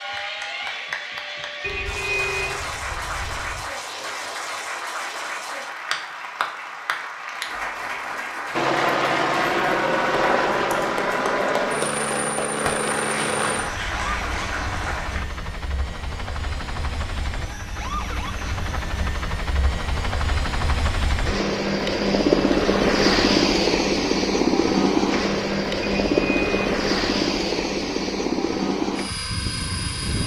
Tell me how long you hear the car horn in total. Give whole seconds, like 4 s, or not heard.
3 s.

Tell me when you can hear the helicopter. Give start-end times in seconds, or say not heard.
8.5-30.2.